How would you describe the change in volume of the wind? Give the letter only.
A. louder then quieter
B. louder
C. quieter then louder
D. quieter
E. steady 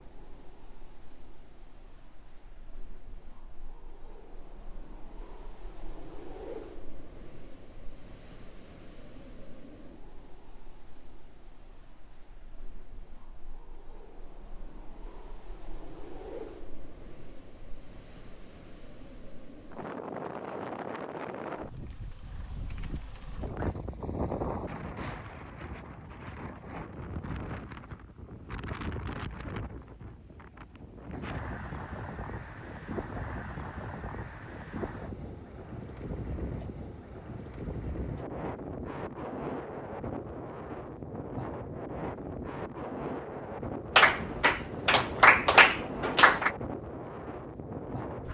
B.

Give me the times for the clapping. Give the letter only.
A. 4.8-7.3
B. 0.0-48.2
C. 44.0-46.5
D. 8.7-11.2
C.